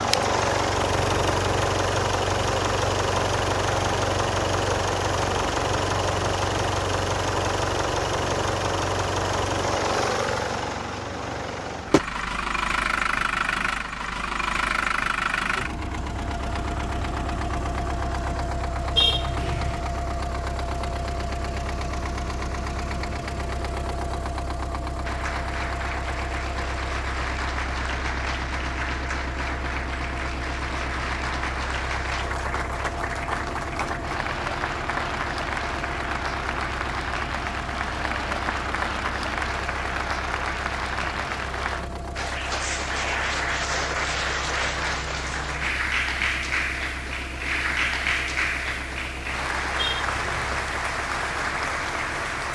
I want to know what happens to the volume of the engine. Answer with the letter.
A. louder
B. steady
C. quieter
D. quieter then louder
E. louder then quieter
C.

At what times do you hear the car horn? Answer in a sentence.
You can hear the car horn from 18.9 to 19.8 s and from 49.8 to 50.6 s.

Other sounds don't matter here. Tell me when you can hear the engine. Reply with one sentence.
The engine can be heard from 0.0 to 52.5 s.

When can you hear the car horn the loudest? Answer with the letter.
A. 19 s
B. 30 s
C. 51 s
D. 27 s
A.